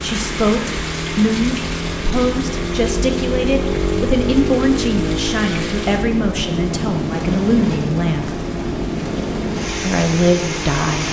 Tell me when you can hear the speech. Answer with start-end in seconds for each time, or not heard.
0.0-8.3, 9.8-11.0.